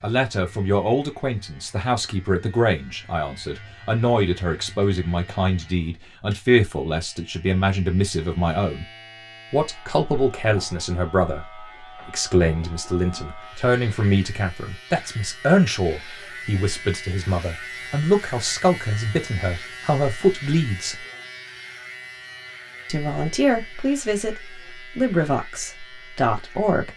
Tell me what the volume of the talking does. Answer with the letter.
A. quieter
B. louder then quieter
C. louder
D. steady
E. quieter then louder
D.